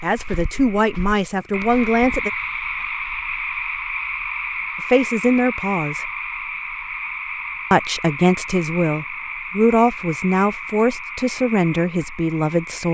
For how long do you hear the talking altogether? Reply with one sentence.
You can hear the talking for 9 seconds altogether.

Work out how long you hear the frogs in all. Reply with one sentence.
The frogs can be heard for 13 seconds in total.